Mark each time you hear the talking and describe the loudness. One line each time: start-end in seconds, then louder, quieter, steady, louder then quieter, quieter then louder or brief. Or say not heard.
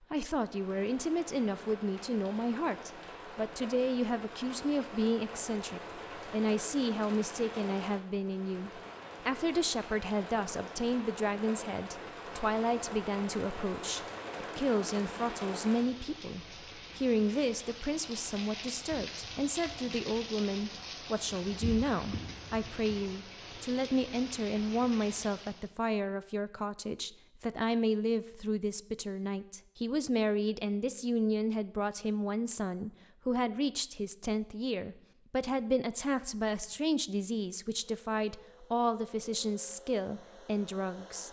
0.1-41.2 steady.